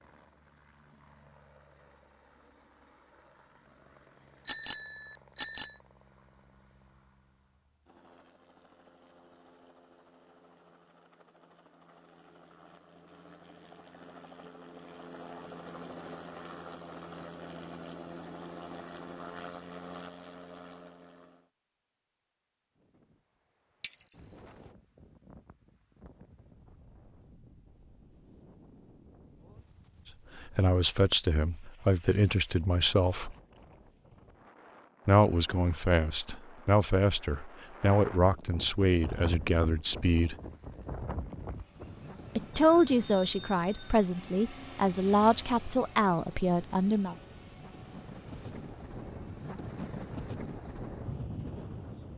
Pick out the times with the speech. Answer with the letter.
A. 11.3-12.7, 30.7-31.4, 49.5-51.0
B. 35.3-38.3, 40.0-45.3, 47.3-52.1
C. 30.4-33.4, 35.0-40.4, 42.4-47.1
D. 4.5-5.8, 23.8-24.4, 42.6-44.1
C.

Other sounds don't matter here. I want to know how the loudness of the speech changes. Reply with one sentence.
The volume of the speech stays about the same.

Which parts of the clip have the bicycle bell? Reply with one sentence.
The bicycle bell can be heard from 4.5 to 5.8 s, from 23.8 to 24.4 s and from 42.6 to 44.1 s.